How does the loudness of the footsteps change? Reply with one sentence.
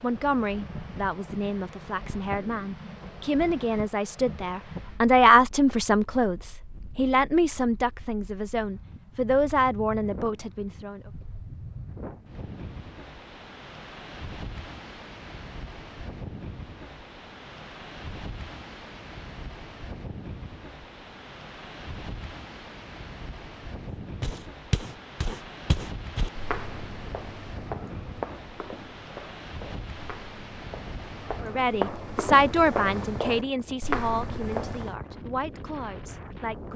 The loudness of the footsteps goes down, then up.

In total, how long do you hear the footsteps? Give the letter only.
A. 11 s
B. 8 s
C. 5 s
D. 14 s
A.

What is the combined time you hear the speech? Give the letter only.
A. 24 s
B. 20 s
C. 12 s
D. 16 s
D.